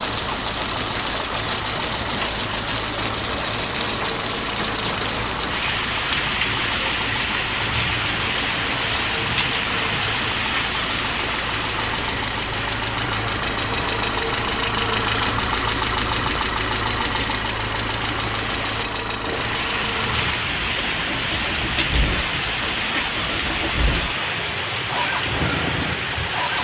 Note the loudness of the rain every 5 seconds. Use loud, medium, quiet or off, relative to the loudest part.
loud, loud, loud, medium, loud, loud.